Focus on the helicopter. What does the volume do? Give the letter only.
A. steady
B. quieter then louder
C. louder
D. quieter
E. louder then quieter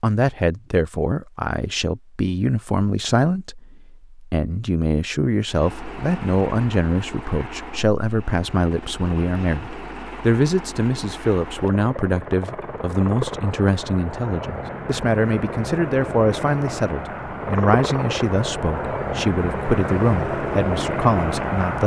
C.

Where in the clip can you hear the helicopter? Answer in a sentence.
The helicopter can be heard from 5.5 to 21.8 s.